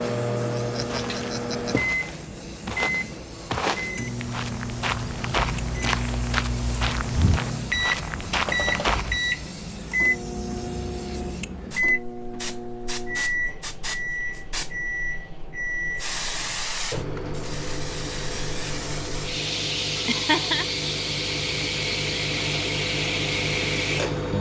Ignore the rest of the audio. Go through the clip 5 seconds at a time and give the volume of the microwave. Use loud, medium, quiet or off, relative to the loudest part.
loud, loud, loud, medium, loud.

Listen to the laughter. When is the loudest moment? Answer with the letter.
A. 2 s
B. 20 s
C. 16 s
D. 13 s
B.